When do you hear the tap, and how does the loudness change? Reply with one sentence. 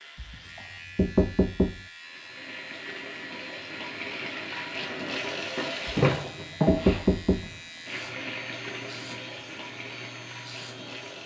You can hear the tap from 2.0 to 11.2 s, getting louder then quieter.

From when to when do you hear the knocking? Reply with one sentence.
The knocking can be heard from 0.1 to 1.8 s and from 5.8 to 7.5 s.